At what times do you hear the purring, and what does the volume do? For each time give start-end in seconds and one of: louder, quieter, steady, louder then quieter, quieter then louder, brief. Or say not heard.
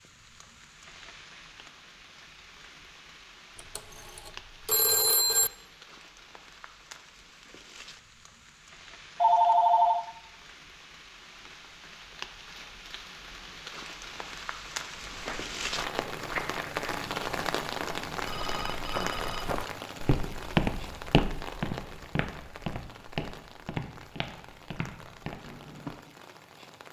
not heard.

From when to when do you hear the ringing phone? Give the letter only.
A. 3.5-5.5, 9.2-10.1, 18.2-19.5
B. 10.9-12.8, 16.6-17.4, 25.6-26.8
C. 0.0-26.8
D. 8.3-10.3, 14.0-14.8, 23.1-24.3
A.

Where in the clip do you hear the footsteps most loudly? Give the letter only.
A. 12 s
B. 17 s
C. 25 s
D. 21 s
D.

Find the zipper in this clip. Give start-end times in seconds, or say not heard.
not heard.